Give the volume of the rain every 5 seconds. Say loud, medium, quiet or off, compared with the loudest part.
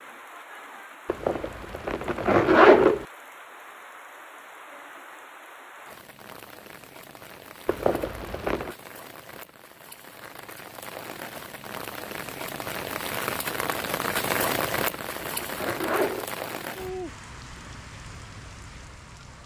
quiet, quiet, loud, medium.